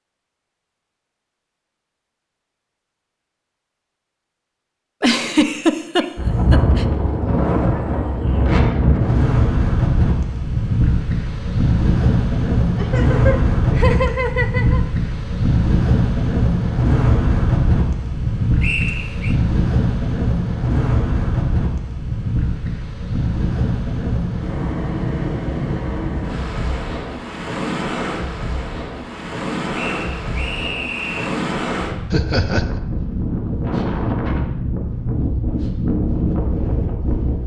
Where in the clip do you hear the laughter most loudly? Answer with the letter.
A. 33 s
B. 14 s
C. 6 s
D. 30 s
C.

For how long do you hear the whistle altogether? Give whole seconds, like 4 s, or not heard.
3 s.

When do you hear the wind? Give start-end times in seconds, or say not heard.
6.2-37.4.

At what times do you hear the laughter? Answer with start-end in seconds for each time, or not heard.
5.0-6.8, 12.8-14.8, 32.1-32.8.